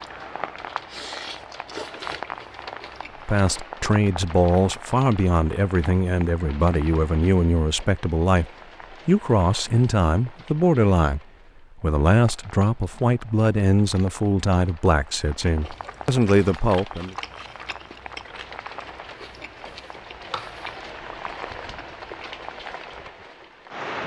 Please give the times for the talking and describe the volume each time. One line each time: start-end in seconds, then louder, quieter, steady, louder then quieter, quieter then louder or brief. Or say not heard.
3.2-17.1 steady.